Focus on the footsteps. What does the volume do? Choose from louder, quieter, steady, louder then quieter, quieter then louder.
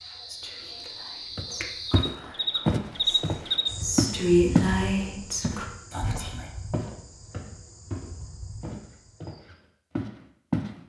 quieter then louder.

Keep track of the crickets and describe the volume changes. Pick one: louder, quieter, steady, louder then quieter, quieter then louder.
louder then quieter.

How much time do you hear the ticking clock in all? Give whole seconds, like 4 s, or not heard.
not heard.